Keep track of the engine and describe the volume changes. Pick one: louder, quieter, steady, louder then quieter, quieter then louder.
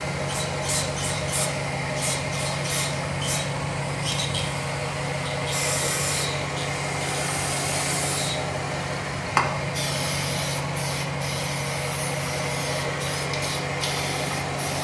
steady.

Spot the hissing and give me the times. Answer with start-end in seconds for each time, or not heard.
0.1-14.7.